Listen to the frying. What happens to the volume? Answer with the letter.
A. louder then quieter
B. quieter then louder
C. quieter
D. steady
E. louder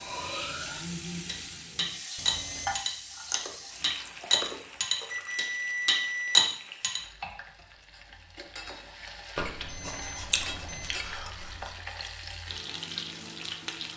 B.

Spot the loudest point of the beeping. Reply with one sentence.
The volume of the beeping peaks at 6 seconds.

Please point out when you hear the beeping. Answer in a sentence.
The beeping can be heard from 2.1 to 2.8 s, from 5.0 to 6.5 s and from 9.6 to 11.0 s.